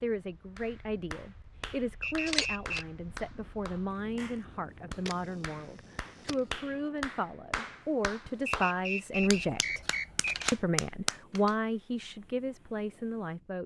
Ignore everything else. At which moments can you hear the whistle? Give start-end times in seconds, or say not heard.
2.0-2.9, 8.4-10.4.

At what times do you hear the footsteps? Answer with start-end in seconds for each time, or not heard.
not heard.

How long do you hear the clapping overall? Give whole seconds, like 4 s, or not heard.
11 s.